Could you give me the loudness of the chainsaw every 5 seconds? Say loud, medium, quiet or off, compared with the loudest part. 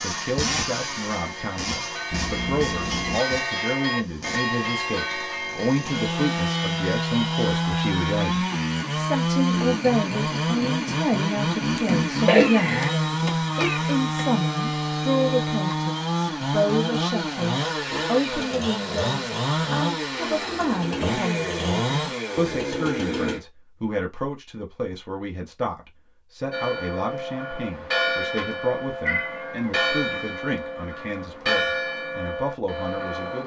medium, loud, loud, loud, loud, off, off.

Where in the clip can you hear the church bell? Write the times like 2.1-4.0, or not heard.
0.0-7.5, 26.5-33.4.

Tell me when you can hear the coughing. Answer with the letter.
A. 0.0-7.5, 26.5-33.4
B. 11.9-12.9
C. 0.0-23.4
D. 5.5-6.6
B.